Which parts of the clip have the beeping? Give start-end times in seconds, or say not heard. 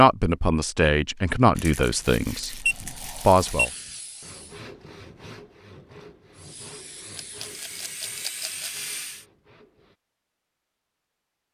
2.6-3.6.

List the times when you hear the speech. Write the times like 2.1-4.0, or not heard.
0.0-3.7.